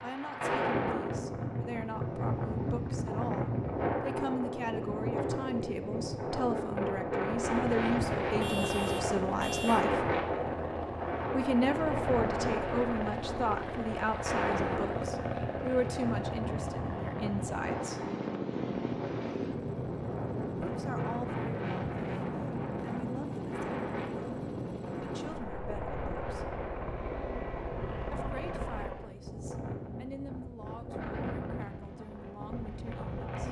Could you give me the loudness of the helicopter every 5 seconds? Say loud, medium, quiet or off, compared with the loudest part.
off, loud, loud, loud, loud, loud, off.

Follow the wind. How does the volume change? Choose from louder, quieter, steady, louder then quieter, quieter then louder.
quieter.